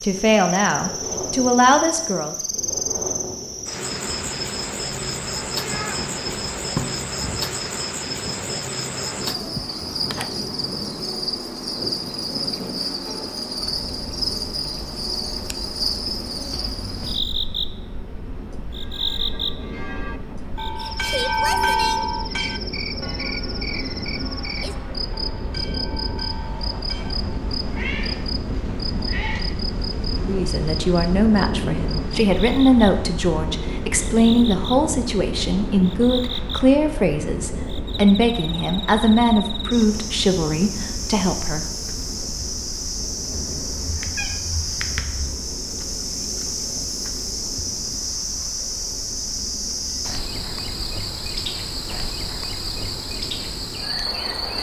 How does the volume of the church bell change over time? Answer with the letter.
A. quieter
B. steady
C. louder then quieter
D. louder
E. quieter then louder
C.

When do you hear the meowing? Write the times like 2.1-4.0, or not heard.
5.6-7.0, 27.6-29.4, 43.3-45.4.